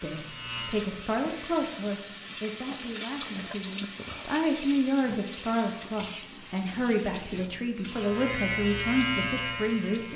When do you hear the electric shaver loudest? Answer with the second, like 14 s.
9 s.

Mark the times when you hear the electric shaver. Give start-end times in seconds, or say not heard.
0.0-1.8, 7.8-10.1.